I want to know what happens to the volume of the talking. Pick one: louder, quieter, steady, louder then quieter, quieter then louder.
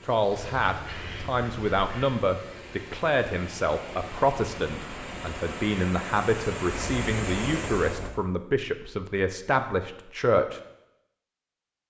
steady.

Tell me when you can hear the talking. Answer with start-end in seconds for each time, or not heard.
0.1-10.6.